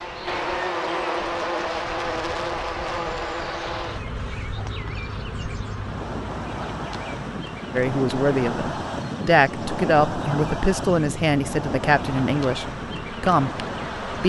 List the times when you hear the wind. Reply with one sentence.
You can hear the wind from 0.0 to 14.2 s.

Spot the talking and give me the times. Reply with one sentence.
The talking can be heard from 7.8 to 14.2 s.